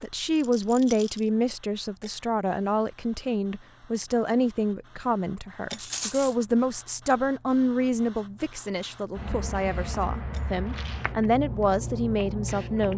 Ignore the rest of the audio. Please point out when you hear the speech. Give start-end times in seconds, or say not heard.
0.0-12.9.